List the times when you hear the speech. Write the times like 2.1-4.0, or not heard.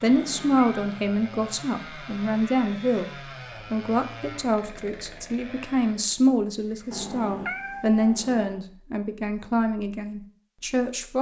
0.0-3.0, 3.7-11.1.